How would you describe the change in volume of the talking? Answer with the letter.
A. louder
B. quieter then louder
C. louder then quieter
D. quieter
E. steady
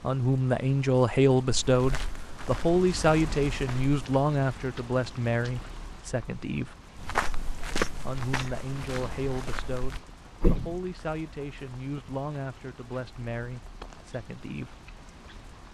D.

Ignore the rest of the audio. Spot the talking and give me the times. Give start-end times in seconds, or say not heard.
0.0-6.8, 8.0-14.8.